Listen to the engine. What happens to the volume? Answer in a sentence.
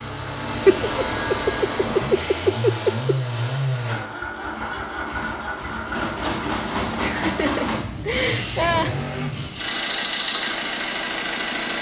The loudness of the engine stays about the same.